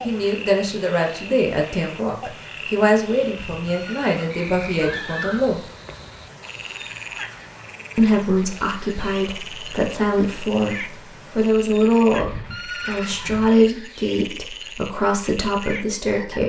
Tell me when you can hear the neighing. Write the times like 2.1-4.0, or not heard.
3.5-5.4, 12.2-13.5.